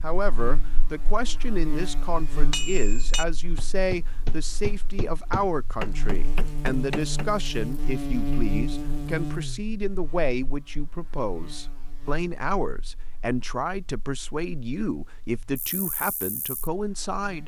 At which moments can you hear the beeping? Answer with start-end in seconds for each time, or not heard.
not heard.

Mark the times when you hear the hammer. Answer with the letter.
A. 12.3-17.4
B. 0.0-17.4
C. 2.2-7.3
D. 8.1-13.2
C.